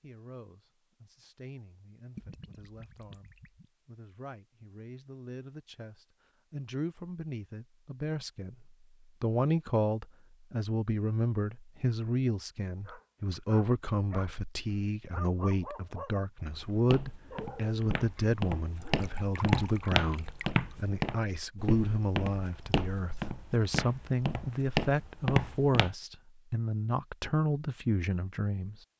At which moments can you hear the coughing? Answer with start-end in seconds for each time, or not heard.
not heard.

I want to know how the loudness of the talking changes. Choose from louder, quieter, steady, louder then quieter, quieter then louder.
louder.